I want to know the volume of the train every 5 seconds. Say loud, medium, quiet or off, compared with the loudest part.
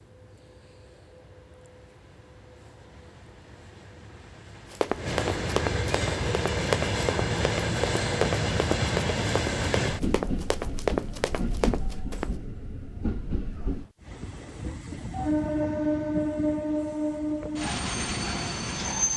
quiet, loud, medium, loud.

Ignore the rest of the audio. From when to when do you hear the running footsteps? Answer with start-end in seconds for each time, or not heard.
4.7-12.3.